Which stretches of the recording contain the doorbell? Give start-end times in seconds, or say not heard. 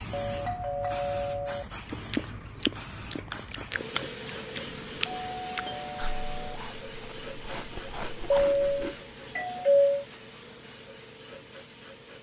0.1-1.7, 4.5-6.6, 8.3-10.1.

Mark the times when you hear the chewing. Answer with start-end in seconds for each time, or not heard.
1.9-8.9.